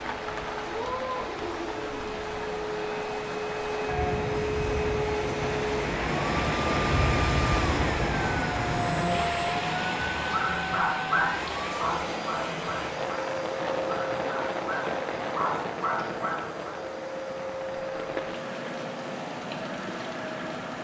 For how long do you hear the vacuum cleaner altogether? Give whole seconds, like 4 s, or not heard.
21 s.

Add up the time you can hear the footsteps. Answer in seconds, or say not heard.
not heard.